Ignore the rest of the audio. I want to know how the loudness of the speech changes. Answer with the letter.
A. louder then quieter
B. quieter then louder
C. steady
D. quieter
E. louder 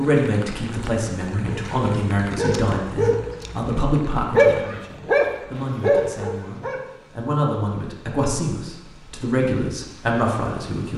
B.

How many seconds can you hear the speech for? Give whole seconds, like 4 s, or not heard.
11 s.